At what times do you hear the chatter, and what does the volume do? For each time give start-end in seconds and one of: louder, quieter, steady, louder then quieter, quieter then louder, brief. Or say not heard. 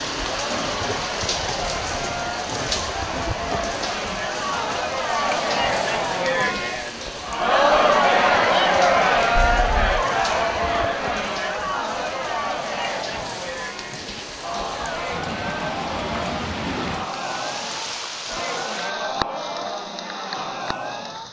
0.1-21.2 louder then quieter.